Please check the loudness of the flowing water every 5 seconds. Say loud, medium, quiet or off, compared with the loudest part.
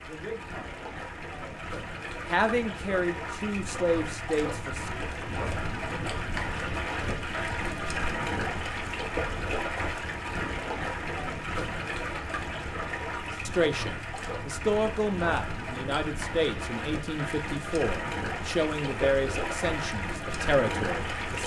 medium, loud, loud, loud, loud.